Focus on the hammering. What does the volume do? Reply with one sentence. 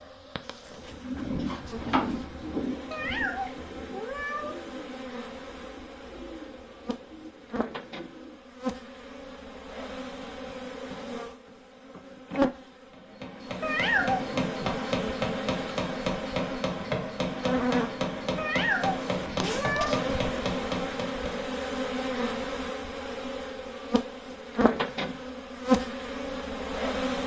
The loudness of the hammering stays about the same.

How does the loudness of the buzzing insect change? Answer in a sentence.
The volume of the buzzing insect goes up.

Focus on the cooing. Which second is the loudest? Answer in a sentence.
The loudest moment of the cooing is at 2 seconds.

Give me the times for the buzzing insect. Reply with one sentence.
You can hear the buzzing insect from 0.0 to 27.2 s.